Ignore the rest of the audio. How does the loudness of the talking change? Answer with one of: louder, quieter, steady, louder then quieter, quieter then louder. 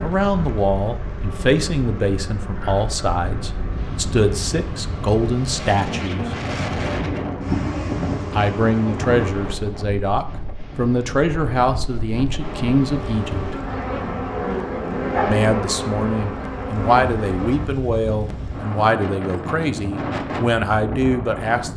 steady.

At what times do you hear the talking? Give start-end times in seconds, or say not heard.
0.0-6.3, 8.3-13.6, 15.2-21.7.